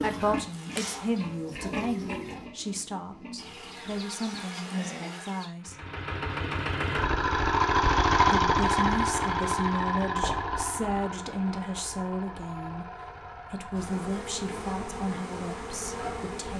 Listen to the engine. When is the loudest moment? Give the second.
8 s.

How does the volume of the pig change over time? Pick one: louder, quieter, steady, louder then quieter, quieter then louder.
louder then quieter.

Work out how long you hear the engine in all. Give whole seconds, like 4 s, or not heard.
11 s.